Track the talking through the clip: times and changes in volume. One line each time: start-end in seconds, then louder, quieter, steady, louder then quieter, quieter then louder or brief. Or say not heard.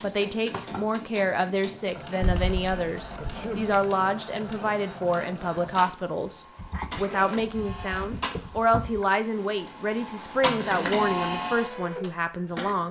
0.0-12.8 steady.